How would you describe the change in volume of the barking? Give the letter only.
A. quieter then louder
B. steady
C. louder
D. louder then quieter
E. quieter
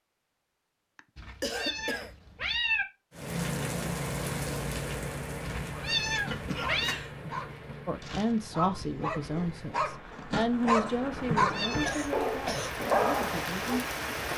C.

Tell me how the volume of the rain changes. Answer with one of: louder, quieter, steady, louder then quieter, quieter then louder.
quieter then louder.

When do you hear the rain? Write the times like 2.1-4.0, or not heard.
3.1-14.3.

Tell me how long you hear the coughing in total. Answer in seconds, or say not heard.
3 s.